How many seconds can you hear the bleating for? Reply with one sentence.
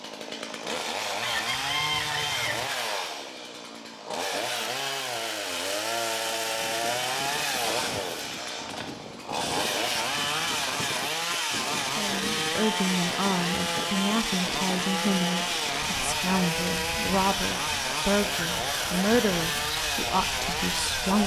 The bleating can't be heard in this clip.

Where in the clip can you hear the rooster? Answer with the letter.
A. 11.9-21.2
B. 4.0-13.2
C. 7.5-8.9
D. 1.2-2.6
D.